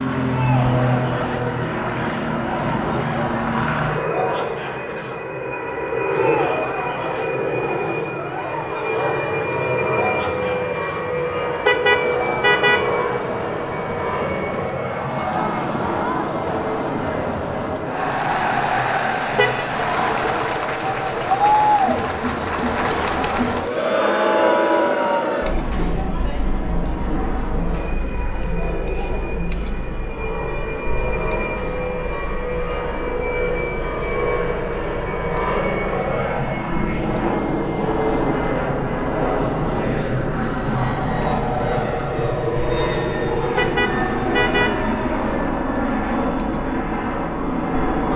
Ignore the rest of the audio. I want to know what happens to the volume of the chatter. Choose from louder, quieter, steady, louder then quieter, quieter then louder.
louder then quieter.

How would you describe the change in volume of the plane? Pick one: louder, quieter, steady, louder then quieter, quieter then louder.
quieter then louder.